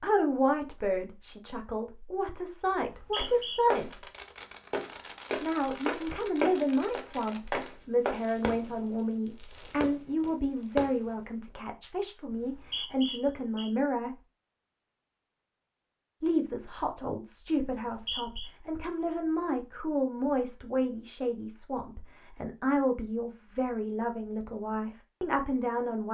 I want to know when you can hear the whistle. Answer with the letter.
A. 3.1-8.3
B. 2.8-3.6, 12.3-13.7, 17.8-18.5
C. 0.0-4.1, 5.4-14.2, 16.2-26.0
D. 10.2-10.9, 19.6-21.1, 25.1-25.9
B.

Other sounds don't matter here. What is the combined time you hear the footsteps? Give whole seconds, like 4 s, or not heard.
5 s.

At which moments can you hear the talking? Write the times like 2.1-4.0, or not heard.
0.0-4.1, 5.4-14.2, 16.2-26.0.